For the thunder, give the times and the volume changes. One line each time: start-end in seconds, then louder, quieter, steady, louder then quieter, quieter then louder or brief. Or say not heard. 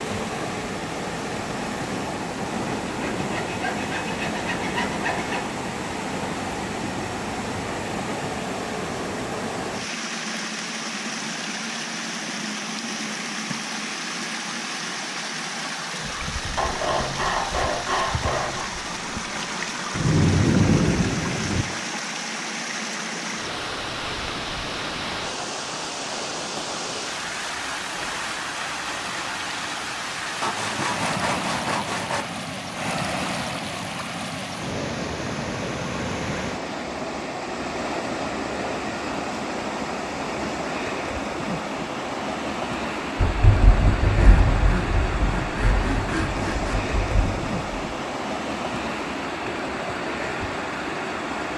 19.9-21.6 brief
43.1-47.9 quieter.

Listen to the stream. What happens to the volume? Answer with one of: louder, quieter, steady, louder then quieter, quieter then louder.
steady.